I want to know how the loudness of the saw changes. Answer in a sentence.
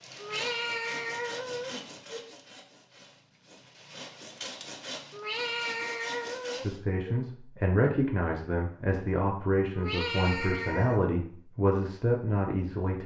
The loudness of the saw goes down, then up.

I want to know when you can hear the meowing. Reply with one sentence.
The meowing can be heard from 0.1 to 2.2 s, from 5.1 to 7.2 s and from 9.7 to 11.0 s.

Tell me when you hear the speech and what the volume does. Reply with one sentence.
You can hear the speech from 6.6 to 13.0 s, at a steady volume.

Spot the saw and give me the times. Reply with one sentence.
You can hear the saw from 0.0 to 6.8 s.